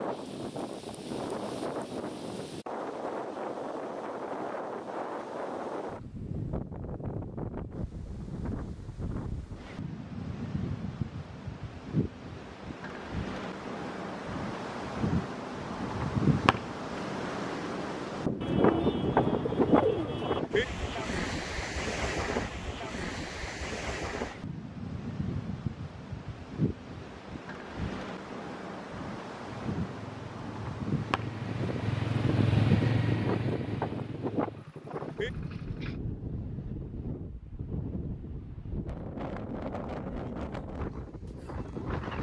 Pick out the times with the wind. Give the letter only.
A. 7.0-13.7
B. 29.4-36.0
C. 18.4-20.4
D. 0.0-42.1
D.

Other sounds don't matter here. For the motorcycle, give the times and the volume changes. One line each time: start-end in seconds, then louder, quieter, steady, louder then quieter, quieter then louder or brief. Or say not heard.
29.4-36.0 louder then quieter.